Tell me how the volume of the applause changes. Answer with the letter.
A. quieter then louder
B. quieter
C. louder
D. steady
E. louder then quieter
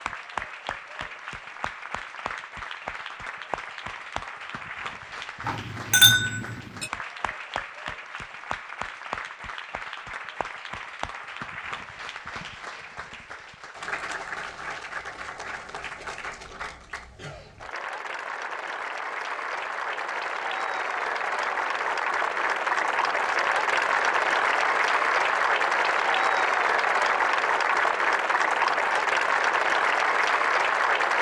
C.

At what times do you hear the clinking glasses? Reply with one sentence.
You can hear the clinking glasses from 5.5 to 6.9 s.